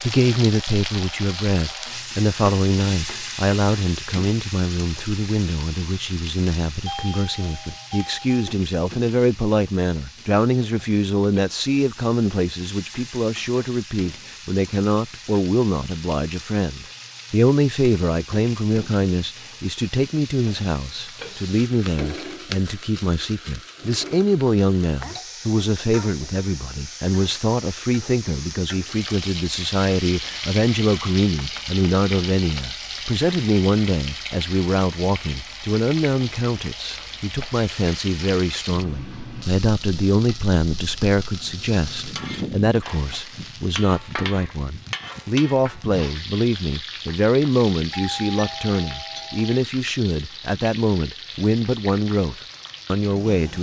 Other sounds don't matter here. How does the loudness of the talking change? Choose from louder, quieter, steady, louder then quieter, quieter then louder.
steady.